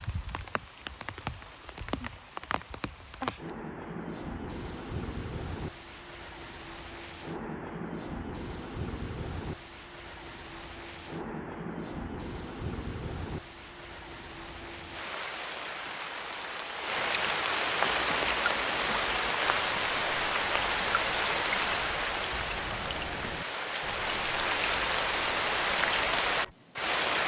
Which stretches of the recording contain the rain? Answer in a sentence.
The rain can be heard from 0.0 to 27.2 s.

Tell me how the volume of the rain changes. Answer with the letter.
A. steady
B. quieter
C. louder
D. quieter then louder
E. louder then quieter
C.